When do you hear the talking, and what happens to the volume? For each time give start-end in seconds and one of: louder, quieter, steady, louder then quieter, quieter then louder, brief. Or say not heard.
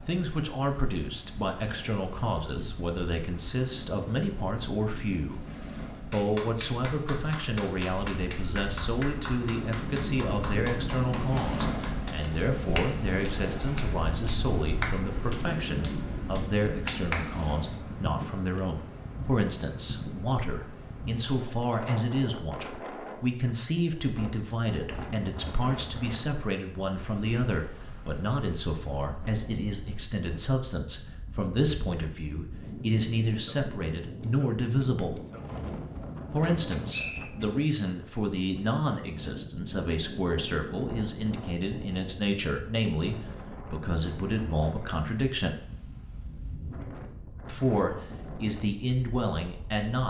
0.1-5.5 steady
6.1-35.2 steady
36.3-45.6 steady
47.5-50.0 brief.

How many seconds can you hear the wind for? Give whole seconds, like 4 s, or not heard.
50 s.